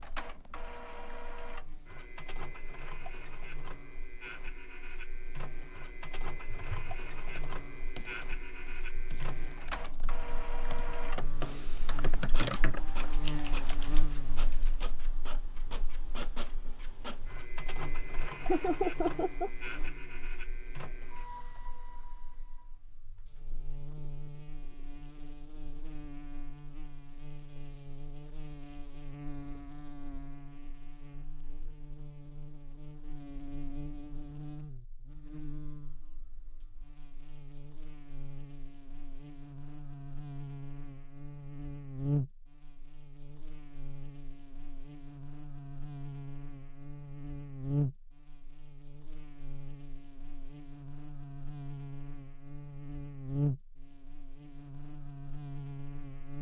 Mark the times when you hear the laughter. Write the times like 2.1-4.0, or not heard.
18.4-19.5.